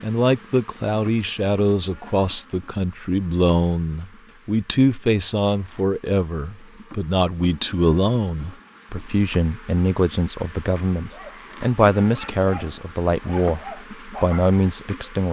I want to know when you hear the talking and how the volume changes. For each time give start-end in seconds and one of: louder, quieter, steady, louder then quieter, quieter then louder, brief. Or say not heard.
0.0-15.2 steady.